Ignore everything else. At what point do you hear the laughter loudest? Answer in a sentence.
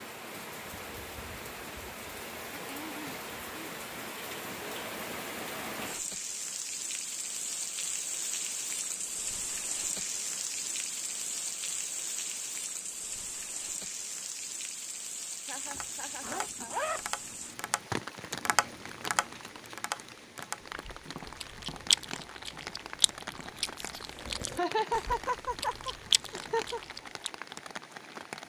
The loudest moment of the laughter is at 25 seconds.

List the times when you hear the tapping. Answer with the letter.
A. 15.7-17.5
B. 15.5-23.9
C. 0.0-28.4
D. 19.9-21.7
B.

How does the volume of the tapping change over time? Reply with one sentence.
The volume of the tapping goes up, then down.